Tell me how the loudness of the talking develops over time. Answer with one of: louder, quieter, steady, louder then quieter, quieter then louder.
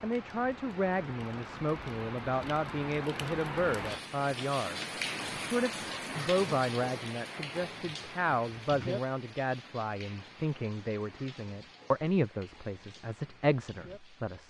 steady.